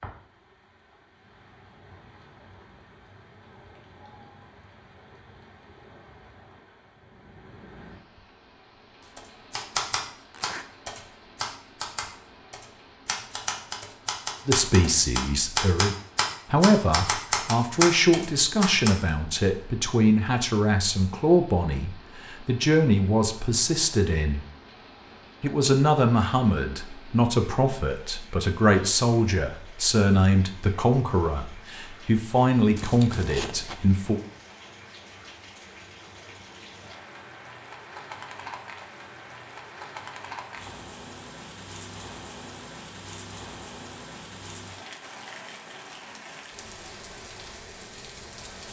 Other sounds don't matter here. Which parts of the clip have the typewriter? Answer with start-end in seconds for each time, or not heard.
9.2-18.9.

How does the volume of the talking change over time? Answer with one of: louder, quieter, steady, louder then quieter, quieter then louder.
steady.